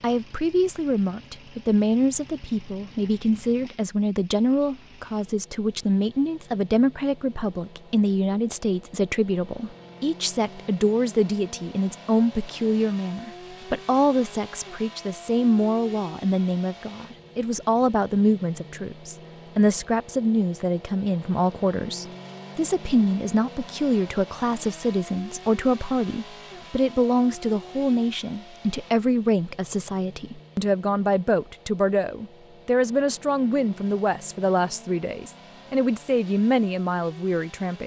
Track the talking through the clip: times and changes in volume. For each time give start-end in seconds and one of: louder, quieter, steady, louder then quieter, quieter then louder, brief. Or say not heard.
0.0-37.8 steady.